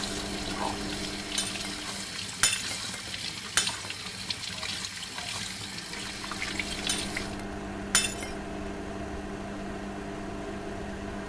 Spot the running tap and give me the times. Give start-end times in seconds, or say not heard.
0.0-7.4.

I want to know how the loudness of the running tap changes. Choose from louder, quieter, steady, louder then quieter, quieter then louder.
steady.